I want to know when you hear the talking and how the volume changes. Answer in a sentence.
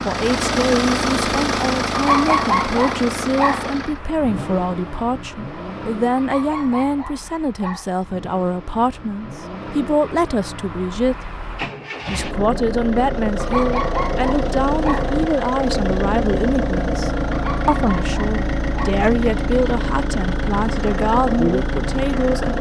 The talking can be heard from 0.1 to 11.2 s, at a steady volume; and from 12.1 to 22.5 s, at a steady volume.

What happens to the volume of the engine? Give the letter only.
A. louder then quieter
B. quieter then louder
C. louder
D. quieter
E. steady
B.